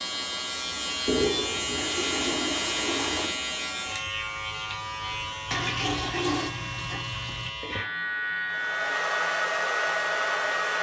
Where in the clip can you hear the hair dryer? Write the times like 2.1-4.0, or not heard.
8.5-10.7.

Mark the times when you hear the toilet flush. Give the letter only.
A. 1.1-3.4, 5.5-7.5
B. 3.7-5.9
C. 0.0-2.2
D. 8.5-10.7
A.